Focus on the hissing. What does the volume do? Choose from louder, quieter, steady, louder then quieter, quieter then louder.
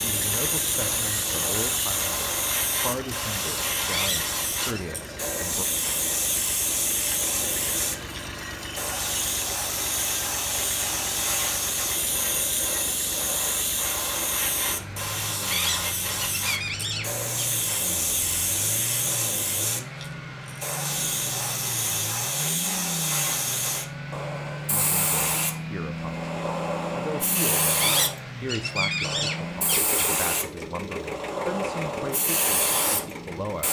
steady.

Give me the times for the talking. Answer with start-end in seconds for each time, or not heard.
0.0-5.7, 24.7-33.6.